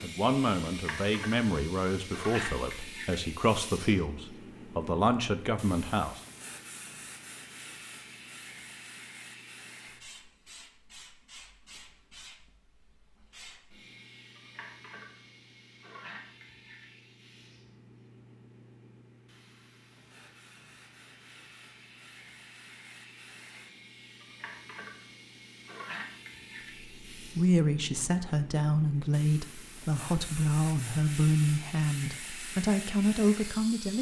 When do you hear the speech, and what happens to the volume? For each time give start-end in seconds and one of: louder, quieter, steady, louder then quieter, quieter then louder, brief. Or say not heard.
0.0-6.2 steady
27.1-33.9 steady.